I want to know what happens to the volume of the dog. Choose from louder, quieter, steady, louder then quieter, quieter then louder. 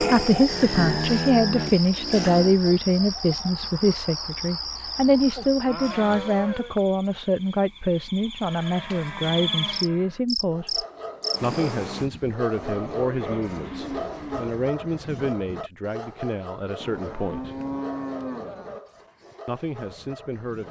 quieter.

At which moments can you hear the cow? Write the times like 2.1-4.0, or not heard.
0.5-2.6, 5.1-6.8, 8.4-10.2, 12.6-14.5, 16.8-18.8.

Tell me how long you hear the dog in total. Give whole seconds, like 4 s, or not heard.
10 s.